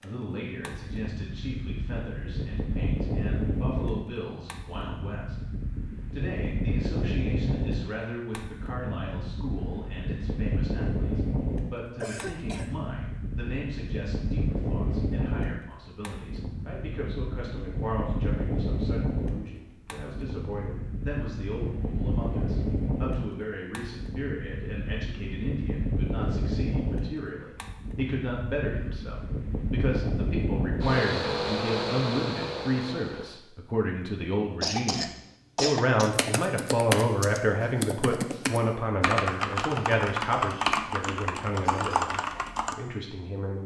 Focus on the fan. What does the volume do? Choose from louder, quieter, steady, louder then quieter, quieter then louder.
steady.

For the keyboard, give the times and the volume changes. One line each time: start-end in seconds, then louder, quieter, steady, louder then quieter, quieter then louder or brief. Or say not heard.
36.0-42.8 steady.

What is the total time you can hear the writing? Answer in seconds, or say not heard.
not heard.